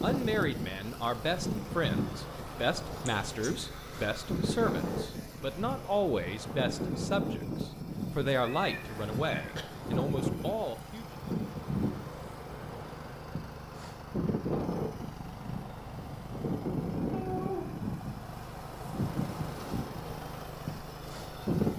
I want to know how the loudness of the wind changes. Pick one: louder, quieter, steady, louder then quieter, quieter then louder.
steady.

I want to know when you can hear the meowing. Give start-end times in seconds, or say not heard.
3.0-3.6, 8.4-9.7, 17.1-17.7.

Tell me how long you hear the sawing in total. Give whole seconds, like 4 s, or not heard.
not heard.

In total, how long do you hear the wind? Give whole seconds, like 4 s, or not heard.
22 s.